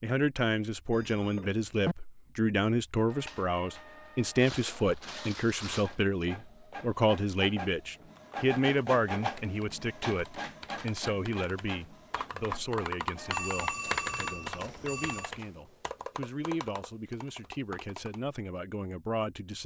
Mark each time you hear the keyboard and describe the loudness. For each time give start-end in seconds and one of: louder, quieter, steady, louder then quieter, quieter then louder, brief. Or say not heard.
8.1-18.2 louder then quieter.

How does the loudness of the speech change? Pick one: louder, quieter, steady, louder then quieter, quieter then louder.
quieter.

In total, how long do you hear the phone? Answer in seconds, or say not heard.
3 s.